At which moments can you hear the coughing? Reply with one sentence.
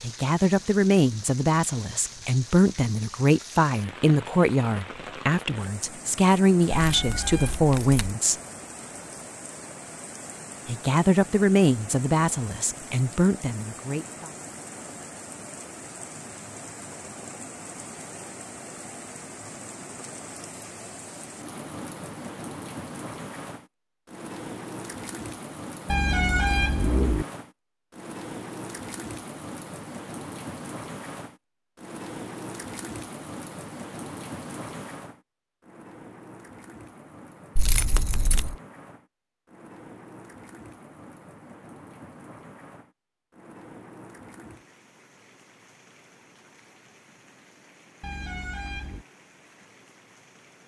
The coughing can't be heard in this clip.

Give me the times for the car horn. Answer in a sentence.
The car horn can be heard from 6.8 to 7.7 s, from 25.9 to 27.2 s and from 48.0 to 49.0 s.